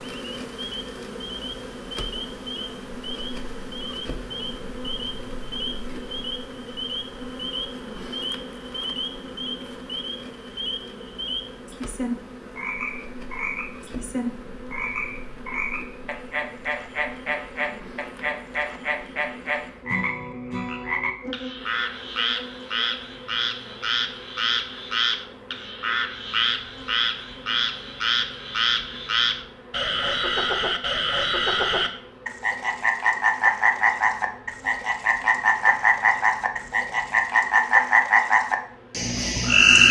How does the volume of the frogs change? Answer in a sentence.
The volume of the frogs goes up.